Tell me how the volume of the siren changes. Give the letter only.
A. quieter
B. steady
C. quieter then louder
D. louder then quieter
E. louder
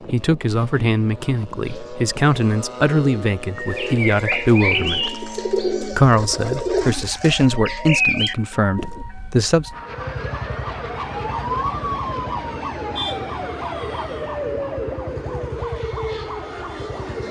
E.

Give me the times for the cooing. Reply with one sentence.
The cooing can be heard from 1.6 to 9.1 s.